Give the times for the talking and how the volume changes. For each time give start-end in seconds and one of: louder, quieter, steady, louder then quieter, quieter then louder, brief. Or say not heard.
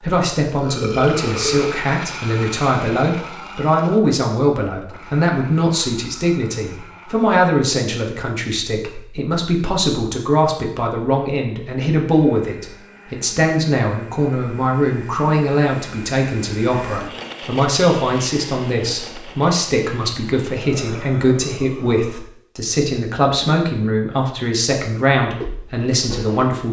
0.0-26.6 steady.